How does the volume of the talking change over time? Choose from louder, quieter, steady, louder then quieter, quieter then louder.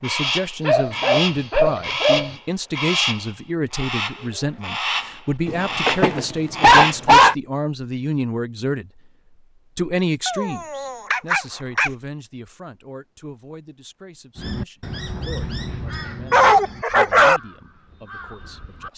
quieter.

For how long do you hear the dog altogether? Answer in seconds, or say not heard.
6 s.